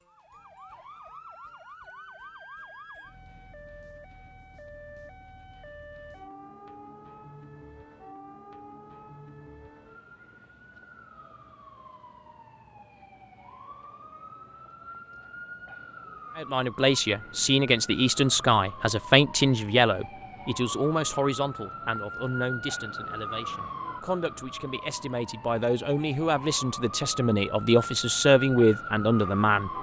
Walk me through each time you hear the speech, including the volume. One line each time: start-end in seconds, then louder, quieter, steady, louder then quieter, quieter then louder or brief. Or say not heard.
16.4-29.7 quieter then louder.